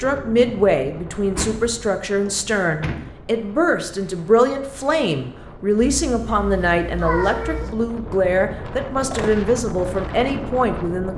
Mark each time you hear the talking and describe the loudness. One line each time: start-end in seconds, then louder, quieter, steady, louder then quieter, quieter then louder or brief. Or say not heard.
0.0-11.1 steady.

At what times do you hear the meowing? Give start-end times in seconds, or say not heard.
6.0-7.8.